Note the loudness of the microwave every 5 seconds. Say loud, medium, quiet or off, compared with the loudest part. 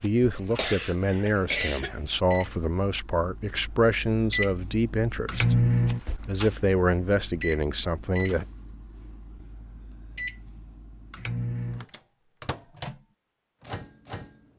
medium, loud, medium.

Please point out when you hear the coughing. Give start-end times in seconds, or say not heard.
0.3-1.9.